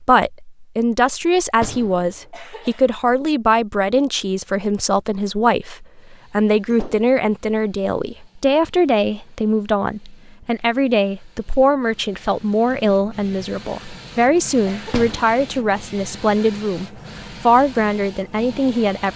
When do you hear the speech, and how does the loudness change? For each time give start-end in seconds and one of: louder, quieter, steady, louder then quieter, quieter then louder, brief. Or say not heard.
0.0-19.1 steady.